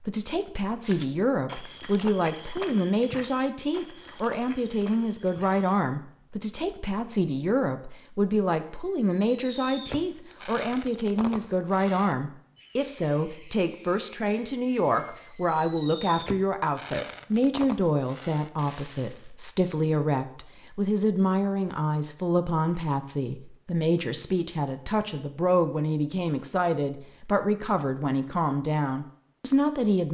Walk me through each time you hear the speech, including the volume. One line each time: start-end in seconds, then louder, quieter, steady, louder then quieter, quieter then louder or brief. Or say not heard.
0.0-30.0 steady.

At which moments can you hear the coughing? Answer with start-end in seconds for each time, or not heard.
not heard.